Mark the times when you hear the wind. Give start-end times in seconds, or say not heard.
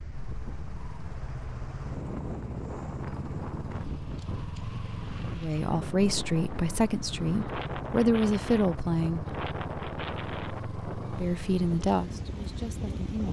0.0-13.2.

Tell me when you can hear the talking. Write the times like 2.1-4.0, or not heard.
5.3-9.3, 11.1-13.2.